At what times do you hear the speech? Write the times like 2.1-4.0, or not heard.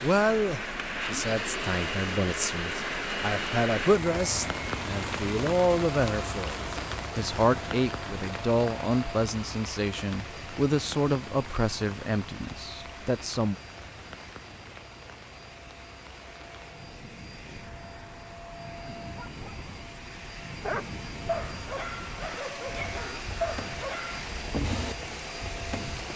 0.0-13.6.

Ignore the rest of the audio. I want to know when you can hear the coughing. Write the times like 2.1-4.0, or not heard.
not heard.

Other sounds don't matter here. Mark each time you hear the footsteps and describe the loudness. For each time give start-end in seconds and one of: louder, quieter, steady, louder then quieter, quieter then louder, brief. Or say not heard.
not heard.